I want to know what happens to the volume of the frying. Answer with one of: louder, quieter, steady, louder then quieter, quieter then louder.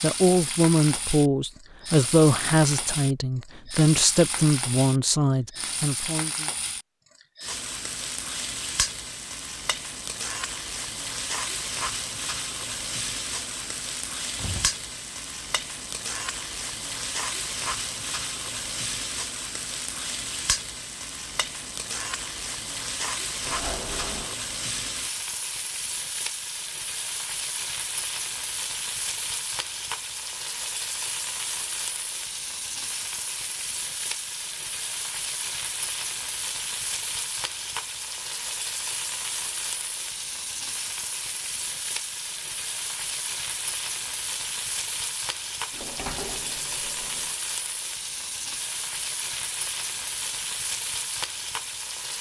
steady.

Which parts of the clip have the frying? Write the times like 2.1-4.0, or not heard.
0.0-52.1.